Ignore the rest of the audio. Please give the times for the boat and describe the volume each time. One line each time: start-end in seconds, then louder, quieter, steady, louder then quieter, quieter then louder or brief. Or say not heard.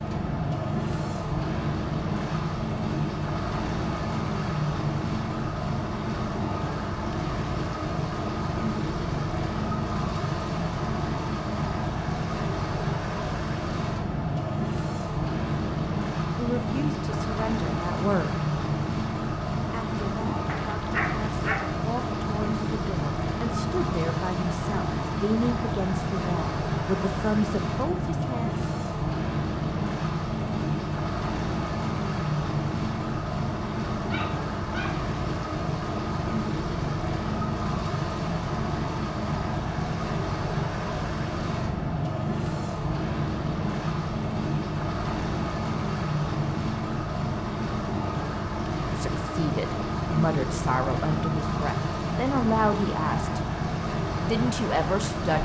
0.0-55.3 steady.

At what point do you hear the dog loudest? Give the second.
21 s.